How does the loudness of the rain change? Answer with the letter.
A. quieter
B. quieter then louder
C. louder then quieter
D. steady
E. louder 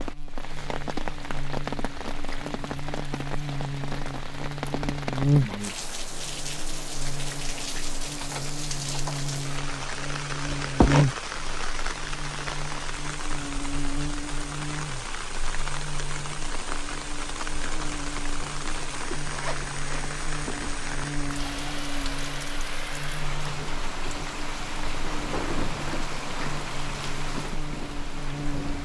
D.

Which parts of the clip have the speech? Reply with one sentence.
You can't hear the speech here.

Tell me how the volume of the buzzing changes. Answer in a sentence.
The loudness of the buzzing goes down.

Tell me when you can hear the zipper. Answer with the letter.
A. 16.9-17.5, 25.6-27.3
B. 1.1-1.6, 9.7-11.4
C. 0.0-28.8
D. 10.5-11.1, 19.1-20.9
D.